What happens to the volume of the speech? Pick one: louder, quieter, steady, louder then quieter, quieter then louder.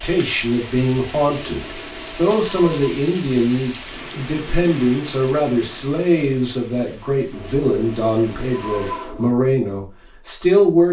steady.